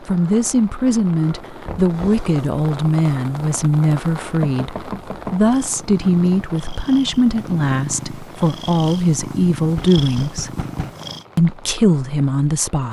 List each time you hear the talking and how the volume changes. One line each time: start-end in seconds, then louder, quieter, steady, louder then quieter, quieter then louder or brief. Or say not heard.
0.0-10.6 steady
11.3-12.8 brief.